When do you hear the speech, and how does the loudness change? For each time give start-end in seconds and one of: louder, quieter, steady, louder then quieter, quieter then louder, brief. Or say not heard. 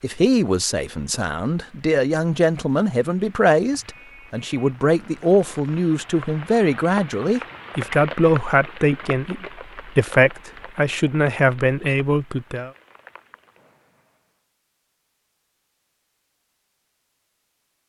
0.0-12.7 steady.